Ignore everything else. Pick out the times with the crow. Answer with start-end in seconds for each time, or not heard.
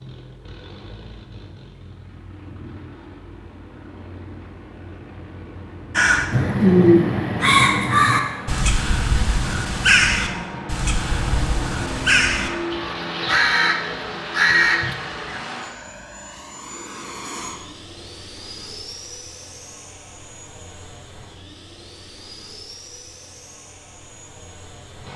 6.0-15.4.